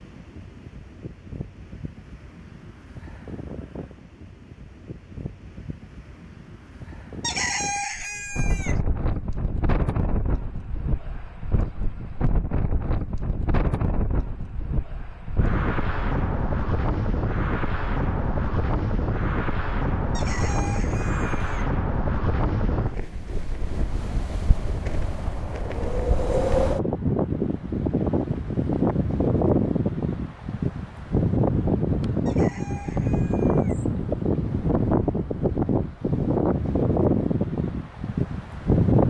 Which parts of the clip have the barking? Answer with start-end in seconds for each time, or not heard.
not heard.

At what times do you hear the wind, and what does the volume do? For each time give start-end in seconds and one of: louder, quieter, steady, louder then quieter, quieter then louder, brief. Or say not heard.
0.0-39.0 louder.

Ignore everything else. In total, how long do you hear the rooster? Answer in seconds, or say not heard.
5 s.